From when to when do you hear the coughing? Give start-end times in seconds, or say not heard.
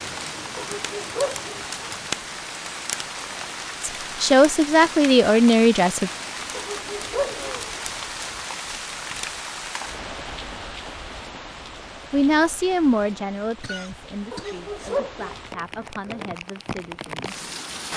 13.6-15.0.